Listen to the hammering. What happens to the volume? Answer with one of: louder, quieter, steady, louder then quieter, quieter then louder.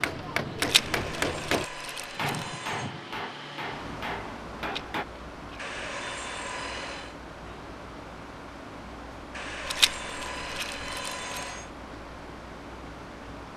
quieter.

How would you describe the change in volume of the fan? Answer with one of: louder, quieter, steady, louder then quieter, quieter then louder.
steady.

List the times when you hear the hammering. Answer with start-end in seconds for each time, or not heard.
0.0-5.0.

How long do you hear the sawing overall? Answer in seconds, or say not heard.
6 s.